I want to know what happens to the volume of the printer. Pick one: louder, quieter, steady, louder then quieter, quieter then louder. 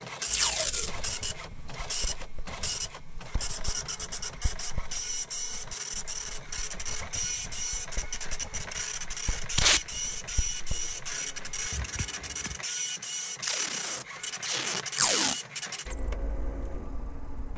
steady.